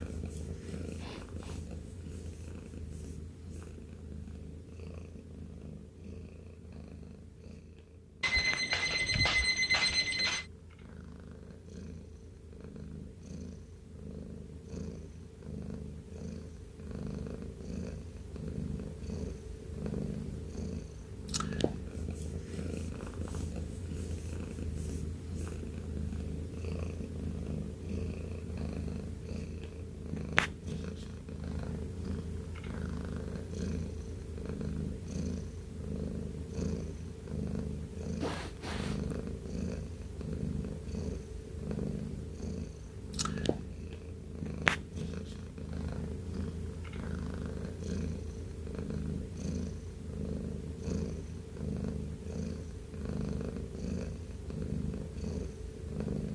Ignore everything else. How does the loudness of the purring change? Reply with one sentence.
The volume of the purring goes up.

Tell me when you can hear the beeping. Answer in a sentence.
You can hear the beeping from 8.2 to 10.4 s.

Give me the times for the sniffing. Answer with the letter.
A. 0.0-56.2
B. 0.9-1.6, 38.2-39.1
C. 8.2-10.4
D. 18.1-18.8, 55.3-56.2
B.